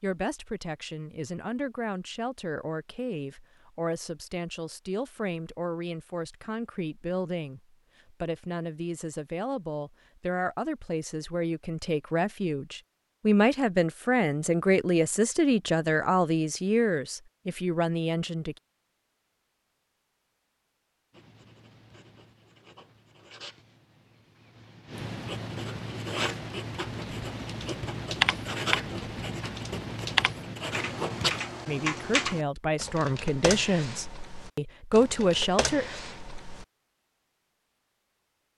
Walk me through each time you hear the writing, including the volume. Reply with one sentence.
You can hear the writing from 21.1 to 31.4 s, getting louder.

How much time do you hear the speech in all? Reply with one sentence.
You can hear the speech for 23 seconds altogether.